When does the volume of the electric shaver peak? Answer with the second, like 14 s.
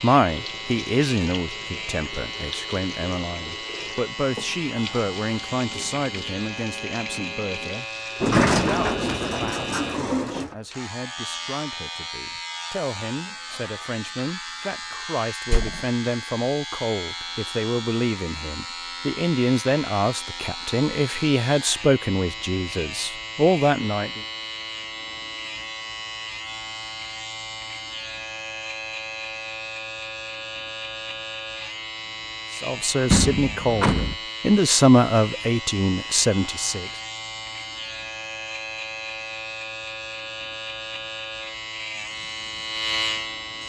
43 s.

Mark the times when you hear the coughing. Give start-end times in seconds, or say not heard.
not heard.